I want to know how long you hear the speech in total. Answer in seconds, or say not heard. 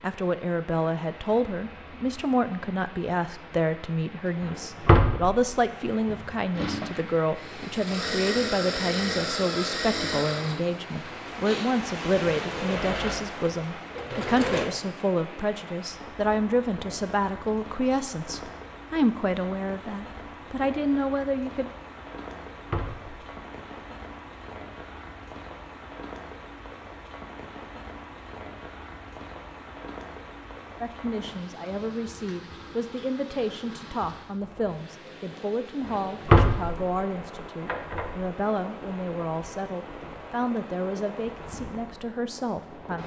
34 s.